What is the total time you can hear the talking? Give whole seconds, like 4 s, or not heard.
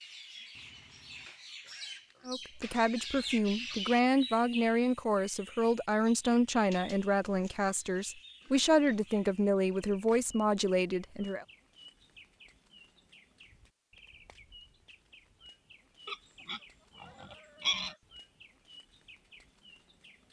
9 s.